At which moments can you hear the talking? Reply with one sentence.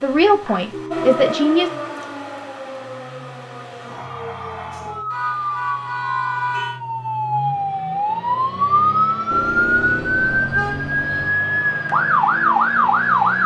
You can hear the talking from 0.0 to 1.7 s.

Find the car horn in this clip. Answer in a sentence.
You can hear the car horn from 0.4 to 1.1 s, from 5.1 to 6.8 s and from 9.3 to 11.3 s.